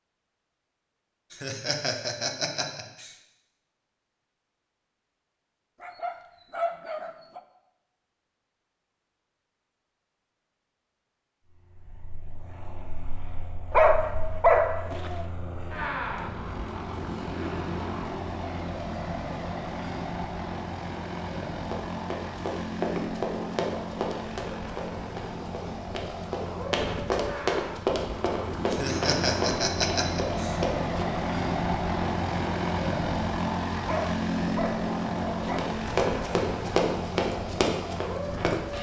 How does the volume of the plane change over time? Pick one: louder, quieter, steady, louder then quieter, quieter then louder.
louder.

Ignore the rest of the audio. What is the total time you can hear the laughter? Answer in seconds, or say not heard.
4 s.